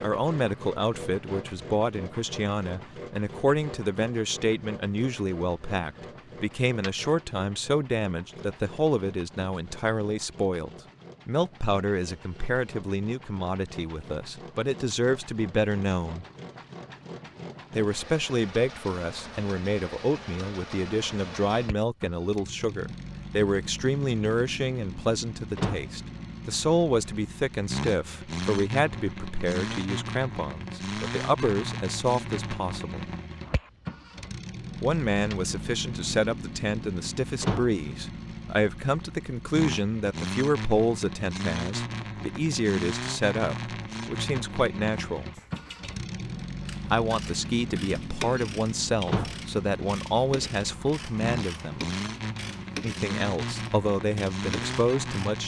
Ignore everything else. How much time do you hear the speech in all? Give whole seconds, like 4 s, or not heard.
50 s.